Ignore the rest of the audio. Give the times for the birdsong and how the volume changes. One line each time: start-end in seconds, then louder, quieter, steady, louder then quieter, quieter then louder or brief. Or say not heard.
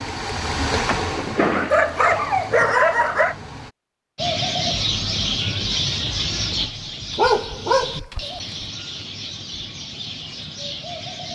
4.2-11.2 quieter.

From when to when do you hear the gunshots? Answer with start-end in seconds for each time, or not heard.
0.8-2.8.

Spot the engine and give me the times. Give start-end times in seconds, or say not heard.
0.0-3.8.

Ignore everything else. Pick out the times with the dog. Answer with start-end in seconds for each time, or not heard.
1.4-3.4, 7.2-8.4.